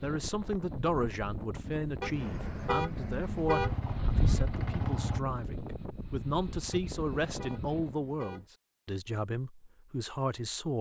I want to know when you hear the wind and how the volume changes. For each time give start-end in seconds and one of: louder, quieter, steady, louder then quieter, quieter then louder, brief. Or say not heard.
0.0-8.0 louder then quieter.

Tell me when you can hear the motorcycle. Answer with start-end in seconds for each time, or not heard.
3.6-5.2.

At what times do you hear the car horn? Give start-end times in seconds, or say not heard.
2.0-3.8, 6.7-8.5.